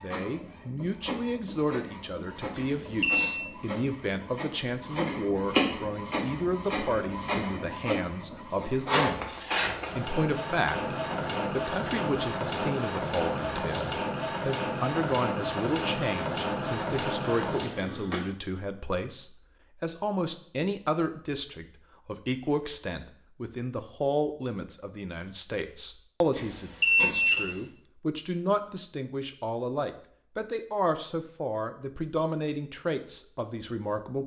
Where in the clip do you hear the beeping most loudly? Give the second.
27 s.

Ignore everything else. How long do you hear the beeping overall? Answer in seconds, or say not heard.
2 s.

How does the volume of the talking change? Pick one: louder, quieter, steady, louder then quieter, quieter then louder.
steady.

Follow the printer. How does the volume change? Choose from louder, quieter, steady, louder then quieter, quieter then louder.
louder.